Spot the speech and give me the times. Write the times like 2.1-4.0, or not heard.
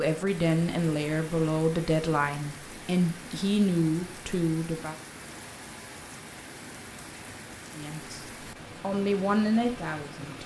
0.0-5.0, 7.8-10.4.